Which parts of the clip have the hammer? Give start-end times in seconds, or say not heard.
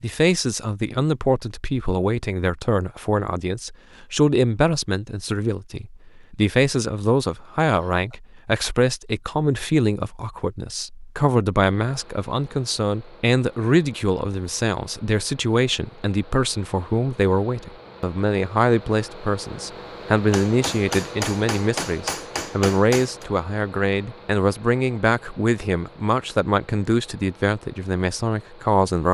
20.3-23.2.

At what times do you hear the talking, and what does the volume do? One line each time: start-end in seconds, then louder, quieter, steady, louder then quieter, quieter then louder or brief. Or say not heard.
0.0-29.0 steady.